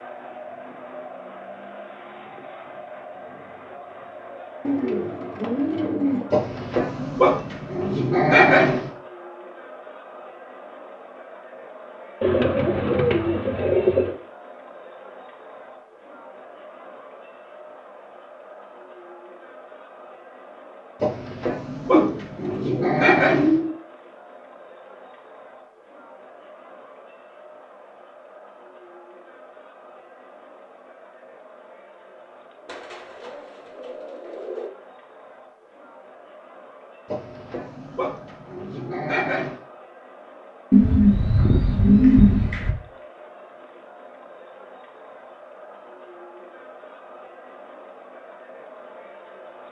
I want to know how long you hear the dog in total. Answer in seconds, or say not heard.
8 s.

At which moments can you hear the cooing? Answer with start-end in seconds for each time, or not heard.
4.7-6.3, 12.2-14.2, 21.9-23.8, 32.6-34.7, 40.7-42.8.